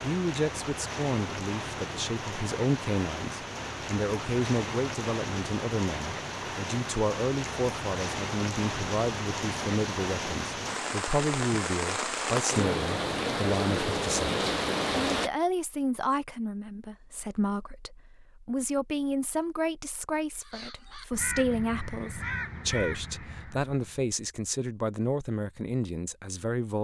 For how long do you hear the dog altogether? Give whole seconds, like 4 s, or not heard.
not heard.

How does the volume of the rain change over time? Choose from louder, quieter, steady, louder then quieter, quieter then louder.
louder.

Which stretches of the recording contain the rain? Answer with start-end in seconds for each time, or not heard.
0.0-15.3.